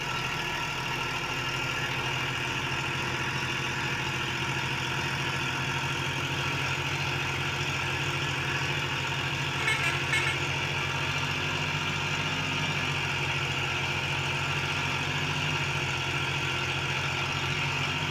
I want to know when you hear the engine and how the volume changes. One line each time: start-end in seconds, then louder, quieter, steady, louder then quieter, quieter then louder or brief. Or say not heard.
0.0-18.0 steady.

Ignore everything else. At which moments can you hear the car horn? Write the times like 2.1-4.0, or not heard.
9.6-10.4.